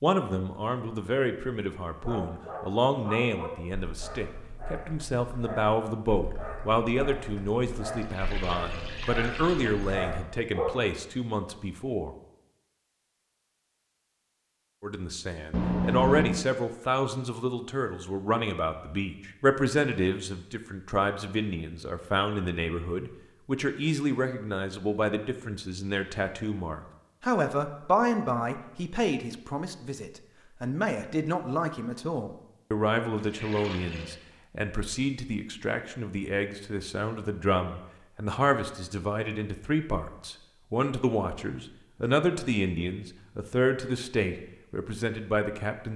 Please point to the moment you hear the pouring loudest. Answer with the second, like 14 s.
16 s.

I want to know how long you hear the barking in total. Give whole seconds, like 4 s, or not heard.
9 s.